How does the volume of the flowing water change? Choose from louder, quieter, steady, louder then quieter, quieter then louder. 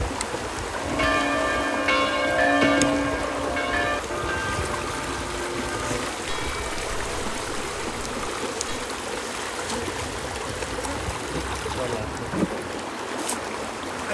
steady.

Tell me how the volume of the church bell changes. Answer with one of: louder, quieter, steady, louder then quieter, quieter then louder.
quieter.